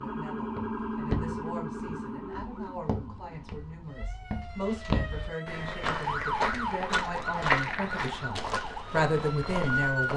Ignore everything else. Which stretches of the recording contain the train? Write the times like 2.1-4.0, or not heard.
not heard.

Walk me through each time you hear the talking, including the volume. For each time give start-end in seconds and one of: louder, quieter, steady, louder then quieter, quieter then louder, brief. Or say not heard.
0.0-10.1 louder.